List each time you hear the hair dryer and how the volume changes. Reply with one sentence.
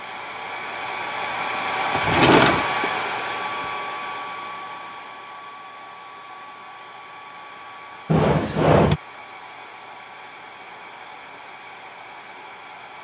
You can hear the hair dryer from 0.0 to 12.9 s, getting quieter.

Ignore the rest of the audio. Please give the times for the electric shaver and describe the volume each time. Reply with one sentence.
The electric shaver can't be heard in this clip.